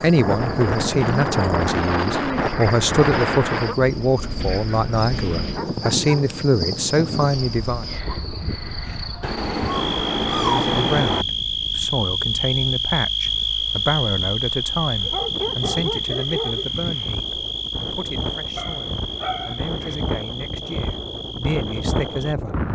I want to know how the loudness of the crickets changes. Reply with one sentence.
The loudness of the crickets goes up, then down.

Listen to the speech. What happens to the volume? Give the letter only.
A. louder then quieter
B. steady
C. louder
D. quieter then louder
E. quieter
E.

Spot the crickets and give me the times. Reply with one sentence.
The crickets can be heard from 0.0 to 22.4 s.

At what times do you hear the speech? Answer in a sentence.
You can hear the speech from 0.0 to 7.8 s and from 10.3 to 22.6 s.